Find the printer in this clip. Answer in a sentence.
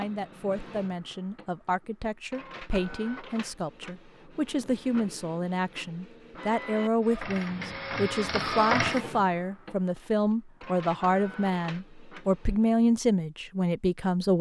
The printer can be heard from 0.0 to 12.8 s.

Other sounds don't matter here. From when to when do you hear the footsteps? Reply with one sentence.
You can't hear the footsteps here.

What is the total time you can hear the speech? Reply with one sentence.
You can hear the speech for 14 seconds altogether.